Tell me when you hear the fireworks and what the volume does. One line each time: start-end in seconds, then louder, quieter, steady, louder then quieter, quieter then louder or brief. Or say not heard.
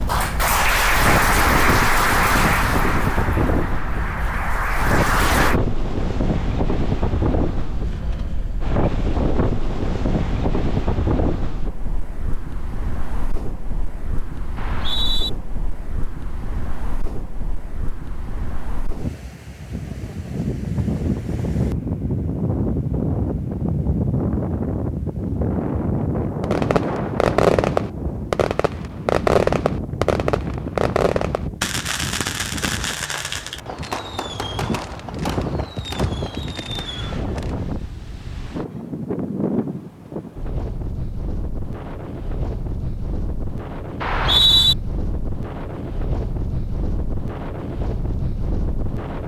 26.4-37.5 quieter.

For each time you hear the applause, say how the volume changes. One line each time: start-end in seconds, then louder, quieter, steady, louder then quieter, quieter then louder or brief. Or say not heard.
0.0-5.6 quieter then louder.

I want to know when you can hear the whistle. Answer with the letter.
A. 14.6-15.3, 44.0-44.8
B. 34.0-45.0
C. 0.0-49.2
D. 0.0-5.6
A.